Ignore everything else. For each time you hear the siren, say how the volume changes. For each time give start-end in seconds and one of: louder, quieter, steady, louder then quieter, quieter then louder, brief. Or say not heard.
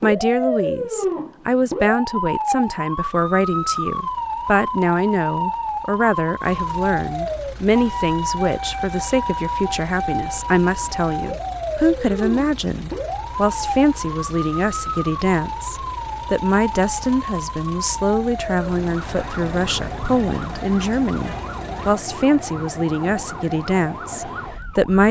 0.0-25.0 quieter.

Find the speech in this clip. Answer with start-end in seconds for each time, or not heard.
0.0-25.0.